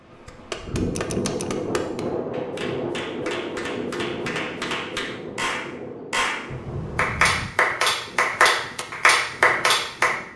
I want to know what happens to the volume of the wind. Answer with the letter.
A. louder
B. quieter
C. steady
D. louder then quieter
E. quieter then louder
B.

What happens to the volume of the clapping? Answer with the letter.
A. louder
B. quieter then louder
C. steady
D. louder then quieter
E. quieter
A.